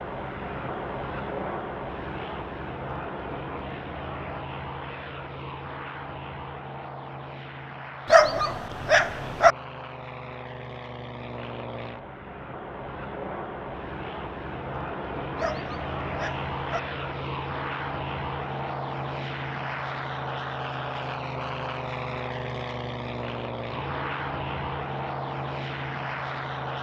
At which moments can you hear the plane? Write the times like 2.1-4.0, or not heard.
0.0-26.7.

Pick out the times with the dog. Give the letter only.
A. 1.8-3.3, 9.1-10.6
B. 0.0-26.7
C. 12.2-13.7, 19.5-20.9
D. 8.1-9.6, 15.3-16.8
D.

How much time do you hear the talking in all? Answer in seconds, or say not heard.
not heard.